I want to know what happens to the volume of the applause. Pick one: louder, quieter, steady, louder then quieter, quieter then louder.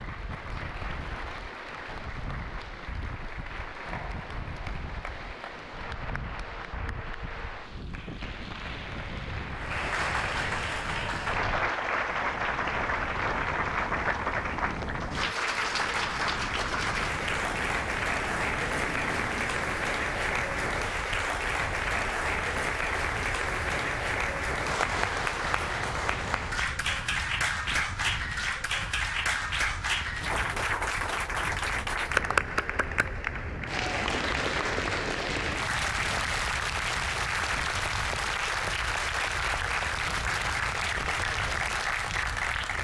louder.